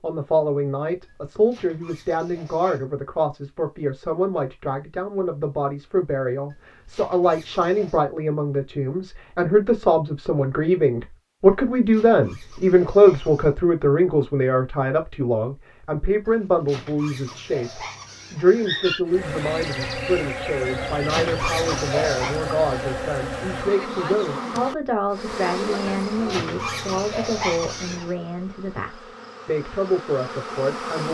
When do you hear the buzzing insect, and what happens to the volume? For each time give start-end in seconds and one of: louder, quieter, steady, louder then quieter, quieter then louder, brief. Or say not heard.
19.1-31.0 quieter.